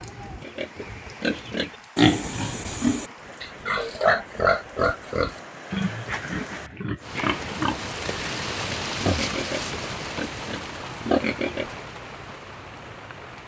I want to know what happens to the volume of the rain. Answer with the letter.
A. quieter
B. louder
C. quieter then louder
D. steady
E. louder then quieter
E.